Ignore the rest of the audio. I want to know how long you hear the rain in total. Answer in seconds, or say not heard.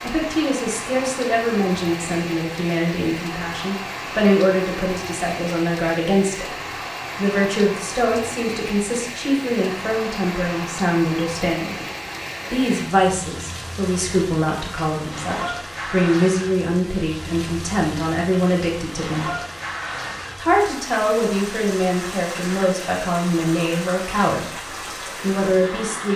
26 s.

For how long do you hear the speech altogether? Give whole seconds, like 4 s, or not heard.
24 s.